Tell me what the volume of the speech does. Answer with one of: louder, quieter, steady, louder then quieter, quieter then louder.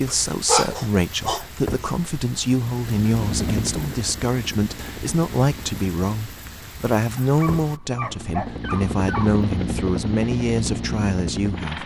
steady.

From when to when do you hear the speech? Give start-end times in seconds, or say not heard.
0.0-11.8.